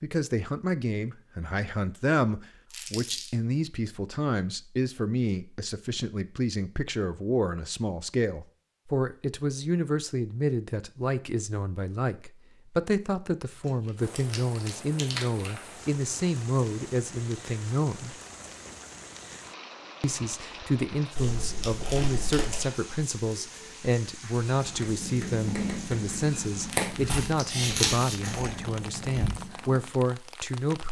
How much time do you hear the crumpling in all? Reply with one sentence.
The crumpling can be heard for 4 seconds in total.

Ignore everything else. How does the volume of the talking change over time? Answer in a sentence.
The loudness of the talking stays about the same.